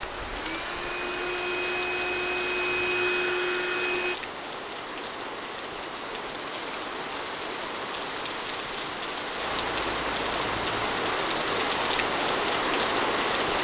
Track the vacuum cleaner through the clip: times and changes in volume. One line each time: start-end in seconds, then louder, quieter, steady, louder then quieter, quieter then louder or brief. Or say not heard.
0.0-4.2 louder.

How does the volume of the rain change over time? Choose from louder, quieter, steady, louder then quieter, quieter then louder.
louder.